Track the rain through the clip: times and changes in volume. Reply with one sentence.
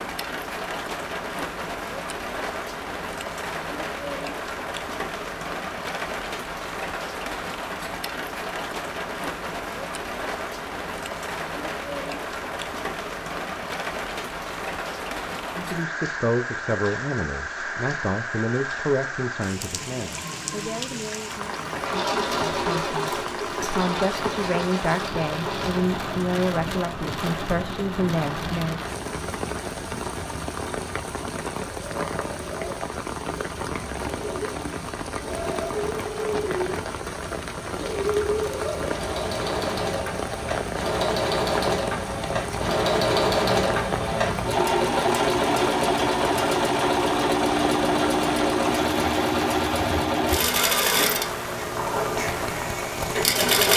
You can hear the rain from 0.0 to 53.5 s, at a steady volume.